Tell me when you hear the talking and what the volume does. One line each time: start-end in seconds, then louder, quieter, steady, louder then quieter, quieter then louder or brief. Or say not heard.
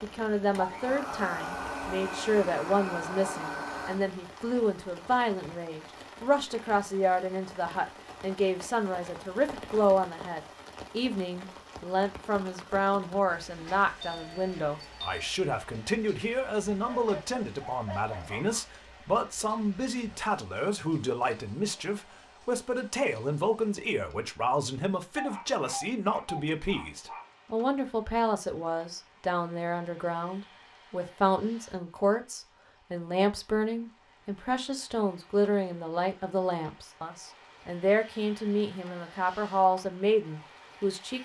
0.0-41.2 steady.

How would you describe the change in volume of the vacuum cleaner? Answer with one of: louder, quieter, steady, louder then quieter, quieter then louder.
steady.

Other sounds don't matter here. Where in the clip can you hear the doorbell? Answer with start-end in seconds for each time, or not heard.
14.0-15.3, 25.1-26.4.